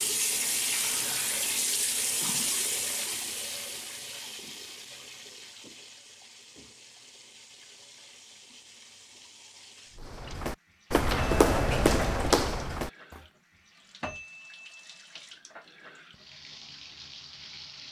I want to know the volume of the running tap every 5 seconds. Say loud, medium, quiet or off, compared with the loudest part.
loud, quiet, quiet, quiet.